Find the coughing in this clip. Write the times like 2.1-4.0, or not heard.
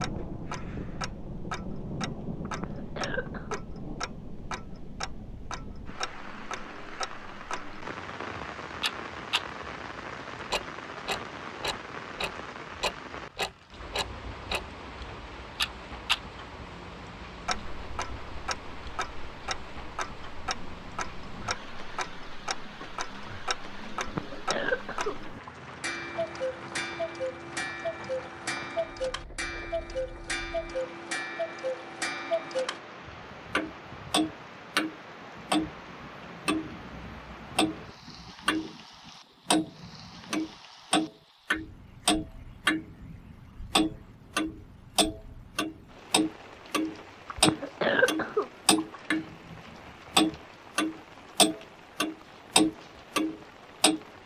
2.5-3.6, 23.9-25.5, 47.3-49.2.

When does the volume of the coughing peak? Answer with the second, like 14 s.
48 s.